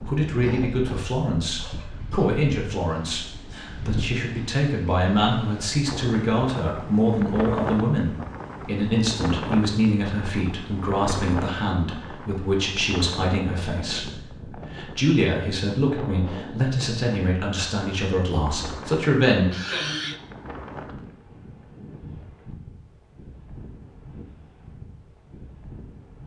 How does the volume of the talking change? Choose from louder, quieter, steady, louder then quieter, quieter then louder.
steady.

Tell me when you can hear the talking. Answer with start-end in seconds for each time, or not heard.
0.0-19.4.